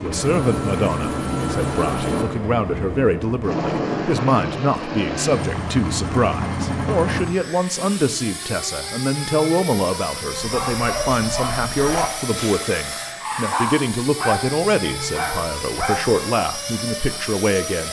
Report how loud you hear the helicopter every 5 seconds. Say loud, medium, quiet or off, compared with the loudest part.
loud, loud, medium, medium.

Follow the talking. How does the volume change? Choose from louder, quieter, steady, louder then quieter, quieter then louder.
steady.